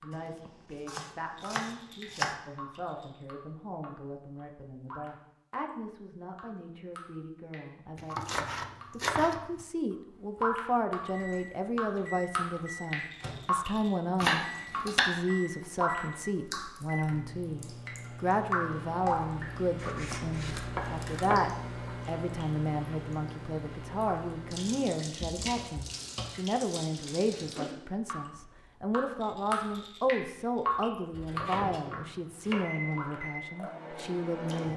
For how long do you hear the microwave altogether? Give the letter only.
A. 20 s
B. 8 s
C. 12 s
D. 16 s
D.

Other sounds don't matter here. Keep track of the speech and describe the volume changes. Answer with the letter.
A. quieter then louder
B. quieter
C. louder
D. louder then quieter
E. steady
C.